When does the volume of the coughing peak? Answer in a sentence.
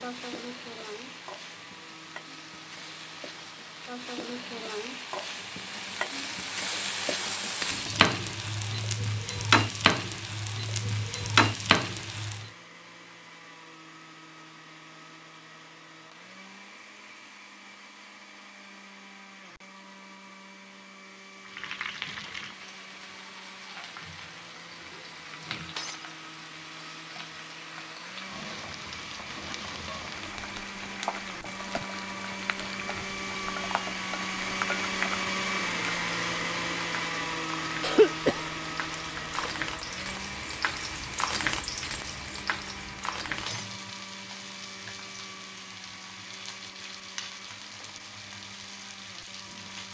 The volume of the coughing peaks at 38 seconds.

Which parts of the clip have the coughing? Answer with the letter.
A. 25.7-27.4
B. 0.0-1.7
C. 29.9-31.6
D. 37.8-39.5
D.